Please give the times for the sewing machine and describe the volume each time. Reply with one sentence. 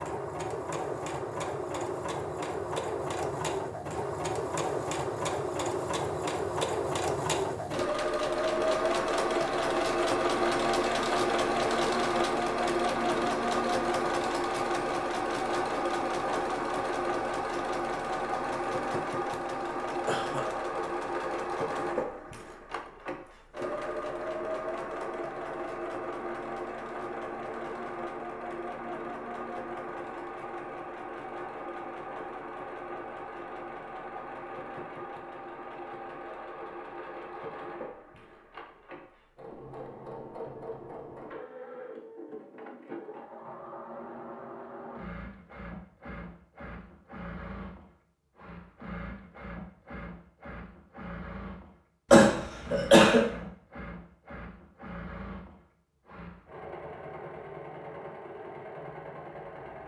The sewing machine can be heard from 0.0 to 59.8 s, getting quieter.